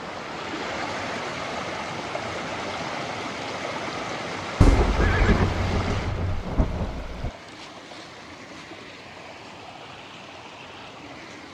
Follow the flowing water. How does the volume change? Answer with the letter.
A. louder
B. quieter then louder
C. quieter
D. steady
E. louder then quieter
C.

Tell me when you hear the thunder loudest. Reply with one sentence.
The loudest moment of the thunder is at 5 seconds.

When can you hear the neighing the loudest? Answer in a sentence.
The loudest moment of the neighing is at 5 seconds.